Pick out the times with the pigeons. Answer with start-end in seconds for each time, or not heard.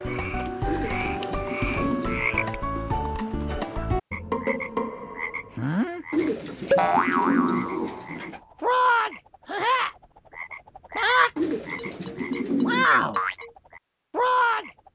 0.7-2.4, 6.1-8.4, 11.3-12.8.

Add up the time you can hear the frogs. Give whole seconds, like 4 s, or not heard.
15 s.